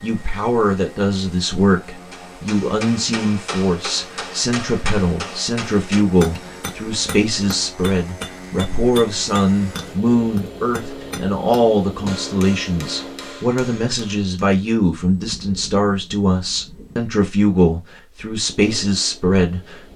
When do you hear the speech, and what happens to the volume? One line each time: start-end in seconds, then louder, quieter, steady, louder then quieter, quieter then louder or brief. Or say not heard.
0.0-19.9 steady.